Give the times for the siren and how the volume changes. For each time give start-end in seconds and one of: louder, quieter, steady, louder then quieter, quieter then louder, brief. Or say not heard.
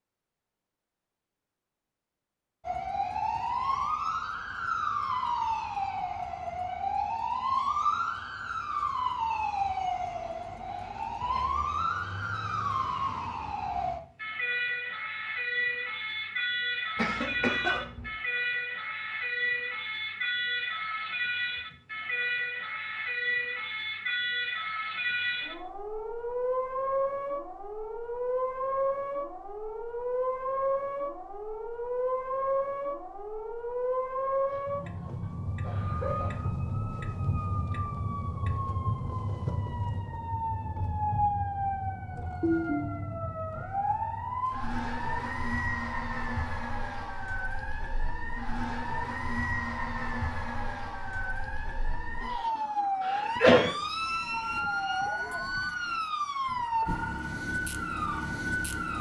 2.6-58.9 steady.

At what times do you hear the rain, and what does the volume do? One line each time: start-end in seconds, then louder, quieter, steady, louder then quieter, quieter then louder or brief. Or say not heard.
not heard.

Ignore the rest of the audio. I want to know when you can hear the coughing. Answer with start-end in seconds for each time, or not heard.
16.9-18.1, 34.5-36.5, 53.0-53.7.